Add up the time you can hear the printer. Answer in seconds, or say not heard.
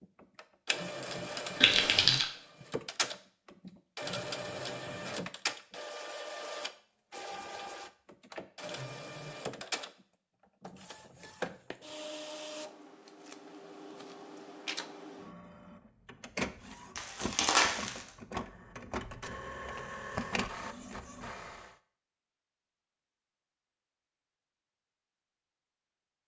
22 s.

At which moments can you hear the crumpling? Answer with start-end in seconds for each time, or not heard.
1.6-2.2, 16.9-18.1.